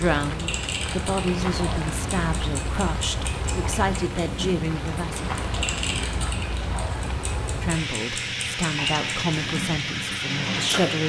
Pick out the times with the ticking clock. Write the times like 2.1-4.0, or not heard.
0.0-11.0.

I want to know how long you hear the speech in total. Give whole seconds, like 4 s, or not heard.
9 s.